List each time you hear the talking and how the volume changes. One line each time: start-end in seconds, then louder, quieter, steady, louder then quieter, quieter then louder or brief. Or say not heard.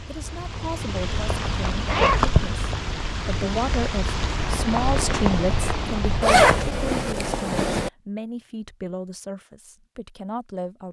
0.1-10.8 louder then quieter.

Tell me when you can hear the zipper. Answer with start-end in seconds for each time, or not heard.
1.2-2.2, 6.2-7.9.